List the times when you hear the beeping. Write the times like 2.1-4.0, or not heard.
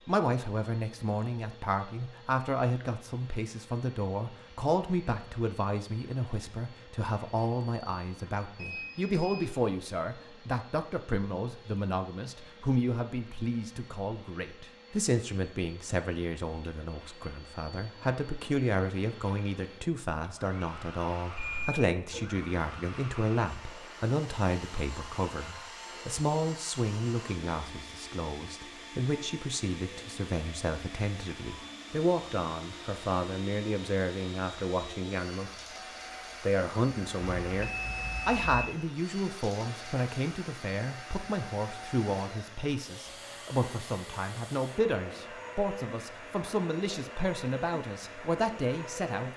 8.6-9.5, 21.4-22.4, 37.2-38.7.